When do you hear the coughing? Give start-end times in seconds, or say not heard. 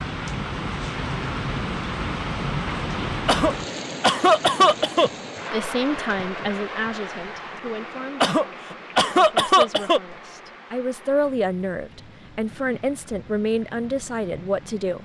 3.2-5.1, 8.2-10.0.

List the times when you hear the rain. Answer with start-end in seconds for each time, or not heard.
0.0-15.0.